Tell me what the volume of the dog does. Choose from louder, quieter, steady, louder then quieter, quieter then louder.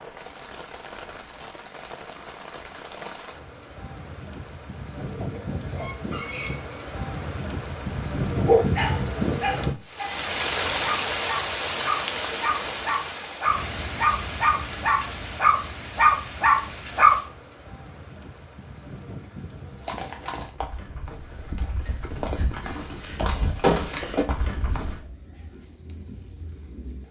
louder.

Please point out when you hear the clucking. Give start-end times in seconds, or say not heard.
5.0-6.8.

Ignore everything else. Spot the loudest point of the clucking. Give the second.
6 s.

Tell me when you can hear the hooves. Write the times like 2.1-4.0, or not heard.
19.8-25.0.